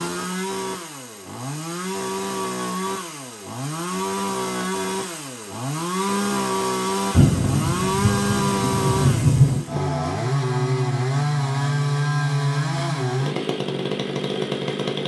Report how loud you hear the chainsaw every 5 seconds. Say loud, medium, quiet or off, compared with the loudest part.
medium, loud, loud.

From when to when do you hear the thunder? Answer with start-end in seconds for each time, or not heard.
7.1-9.7.